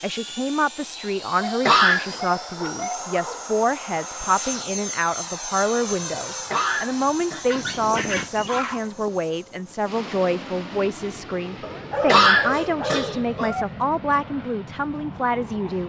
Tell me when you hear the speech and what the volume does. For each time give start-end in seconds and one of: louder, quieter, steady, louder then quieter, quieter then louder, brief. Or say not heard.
0.0-15.8 steady.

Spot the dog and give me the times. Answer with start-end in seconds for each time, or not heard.
1.4-3.5, 7.5-8.8, 11.6-13.7.